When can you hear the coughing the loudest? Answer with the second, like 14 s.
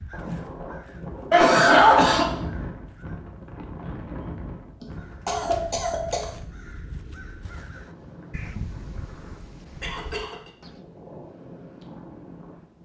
2 s.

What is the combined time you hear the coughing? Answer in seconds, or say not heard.
3 s.